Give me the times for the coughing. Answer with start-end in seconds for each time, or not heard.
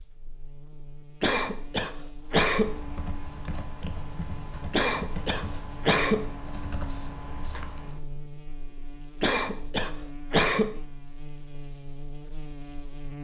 1.2-2.8, 4.7-6.3, 9.2-10.8.